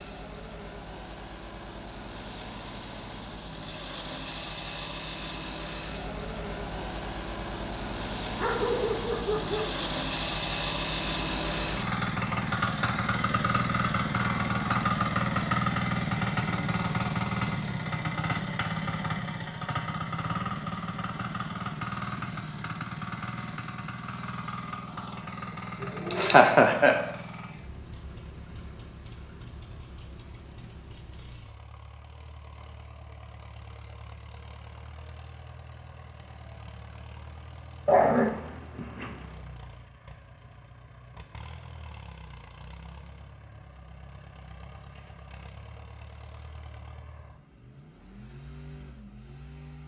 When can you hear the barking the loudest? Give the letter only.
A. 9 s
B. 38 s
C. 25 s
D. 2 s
B.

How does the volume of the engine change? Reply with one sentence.
The loudness of the engine goes up, then down.